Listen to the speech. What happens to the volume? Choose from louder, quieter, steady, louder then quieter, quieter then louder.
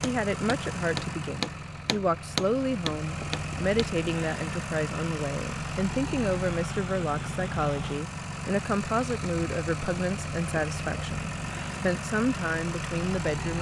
steady.